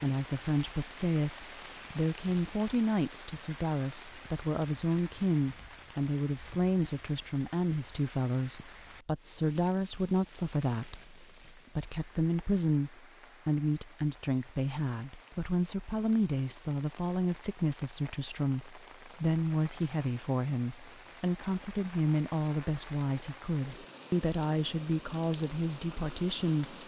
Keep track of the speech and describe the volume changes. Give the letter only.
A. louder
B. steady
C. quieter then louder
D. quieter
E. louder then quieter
B.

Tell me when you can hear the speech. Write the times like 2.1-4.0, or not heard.
0.0-26.8.